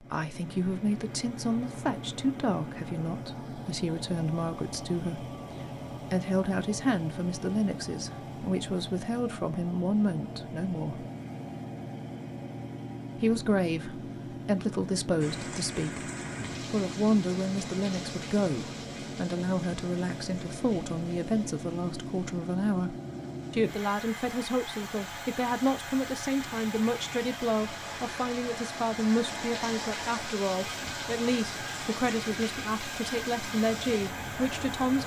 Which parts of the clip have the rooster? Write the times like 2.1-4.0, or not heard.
not heard.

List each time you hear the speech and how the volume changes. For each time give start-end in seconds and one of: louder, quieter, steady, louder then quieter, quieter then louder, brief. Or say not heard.
0.0-11.1 steady
13.2-35.0 steady.